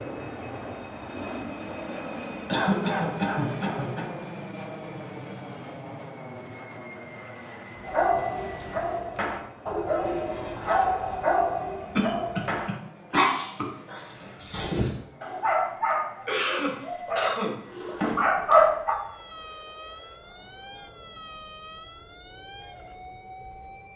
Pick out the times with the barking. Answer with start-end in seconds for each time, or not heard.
7.8-18.9.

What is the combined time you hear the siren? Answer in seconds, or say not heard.
5 s.